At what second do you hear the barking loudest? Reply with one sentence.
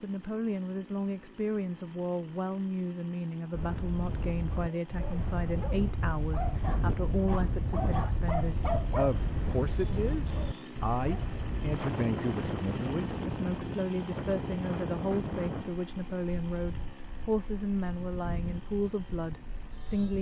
The volume of the barking peaks at 9 seconds.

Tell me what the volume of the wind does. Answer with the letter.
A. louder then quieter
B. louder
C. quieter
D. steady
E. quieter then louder
C.